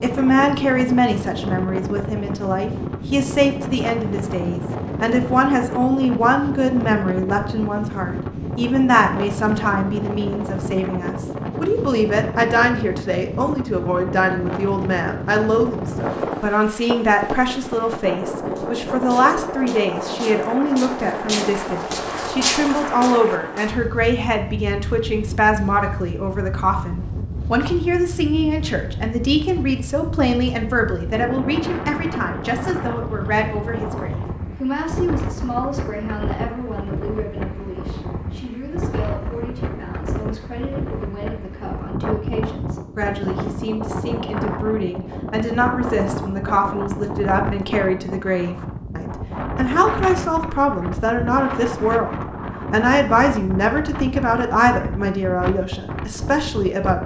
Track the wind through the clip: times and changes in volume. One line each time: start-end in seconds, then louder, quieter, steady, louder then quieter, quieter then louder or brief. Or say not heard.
0.0-57.0 steady.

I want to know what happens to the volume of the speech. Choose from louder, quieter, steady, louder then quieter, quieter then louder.
quieter then louder.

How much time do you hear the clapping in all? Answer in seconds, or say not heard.
not heard.